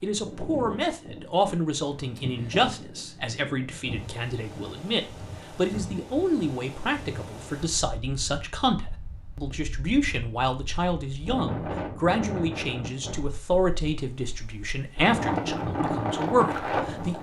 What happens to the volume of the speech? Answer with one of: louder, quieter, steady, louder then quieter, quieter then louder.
steady.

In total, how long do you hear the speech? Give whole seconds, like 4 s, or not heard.
17 s.